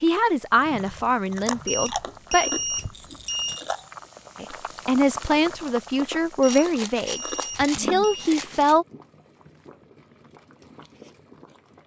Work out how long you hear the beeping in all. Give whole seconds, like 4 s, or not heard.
4 s.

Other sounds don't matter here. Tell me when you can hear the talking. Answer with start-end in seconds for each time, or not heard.
0.0-2.5, 4.4-8.8.